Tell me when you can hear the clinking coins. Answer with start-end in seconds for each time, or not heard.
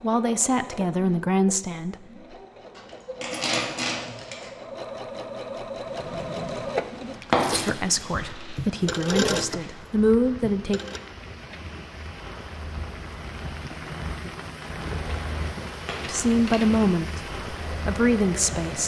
2.8-4.5, 7.3-7.7, 15.8-16.8.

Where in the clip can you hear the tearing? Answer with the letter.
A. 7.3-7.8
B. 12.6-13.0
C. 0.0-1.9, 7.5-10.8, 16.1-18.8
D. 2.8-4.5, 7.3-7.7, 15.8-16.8
A.